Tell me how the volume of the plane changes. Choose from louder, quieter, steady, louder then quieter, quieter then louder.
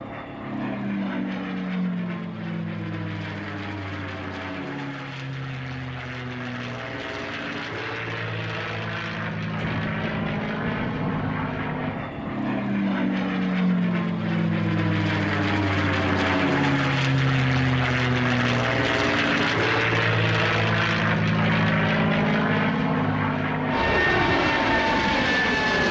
louder.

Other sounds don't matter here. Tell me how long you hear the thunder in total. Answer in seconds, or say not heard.
3 s.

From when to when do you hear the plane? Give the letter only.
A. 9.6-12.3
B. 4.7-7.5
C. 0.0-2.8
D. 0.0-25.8
D.